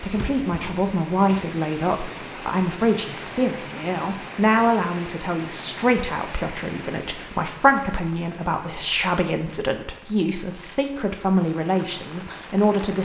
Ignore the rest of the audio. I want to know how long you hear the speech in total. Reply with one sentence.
You can hear the speech for 13 seconds altogether.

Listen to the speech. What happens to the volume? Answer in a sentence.
The volume of the speech stays about the same.